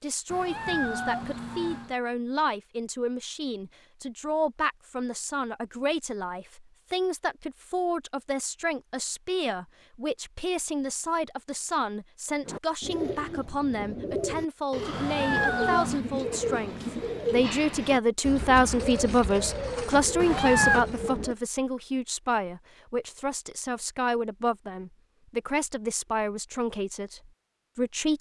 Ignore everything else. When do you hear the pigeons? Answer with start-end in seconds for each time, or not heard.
12.4-21.4.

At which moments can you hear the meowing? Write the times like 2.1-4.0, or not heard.
0.2-1.9, 14.9-16.1, 20.2-20.9.